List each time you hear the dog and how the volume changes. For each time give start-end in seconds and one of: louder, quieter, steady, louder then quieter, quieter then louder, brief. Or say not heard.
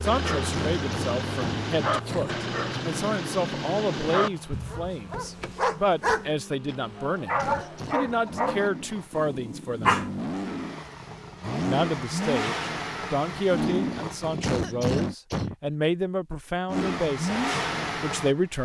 0.0-10.6 steady.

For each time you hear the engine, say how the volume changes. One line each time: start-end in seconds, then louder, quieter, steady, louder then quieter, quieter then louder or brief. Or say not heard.
0.0-15.2 quieter then louder
16.6-18.6 brief.